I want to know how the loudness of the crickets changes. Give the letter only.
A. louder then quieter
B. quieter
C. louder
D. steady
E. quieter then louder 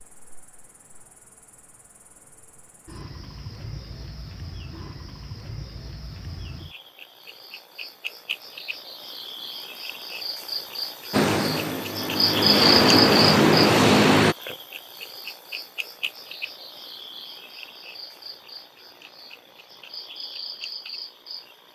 A.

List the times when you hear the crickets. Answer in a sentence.
You can hear the crickets from 0.0 to 21.6 s.